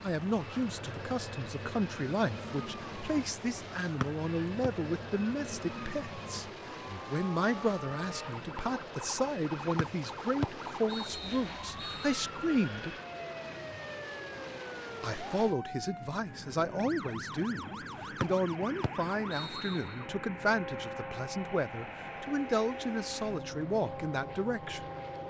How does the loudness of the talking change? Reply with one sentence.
The loudness of the talking stays about the same.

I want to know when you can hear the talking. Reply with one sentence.
You can hear the talking from 0.0 to 12.9 s and from 15.0 to 24.9 s.